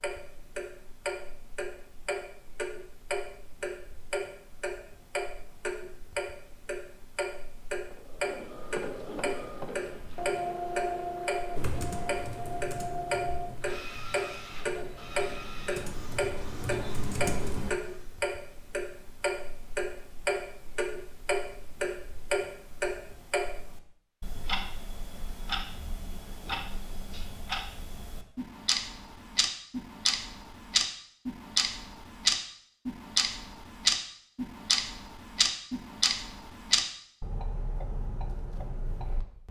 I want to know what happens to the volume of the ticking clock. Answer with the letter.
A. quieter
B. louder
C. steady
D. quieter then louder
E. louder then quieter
B.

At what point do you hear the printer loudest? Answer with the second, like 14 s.
11 s.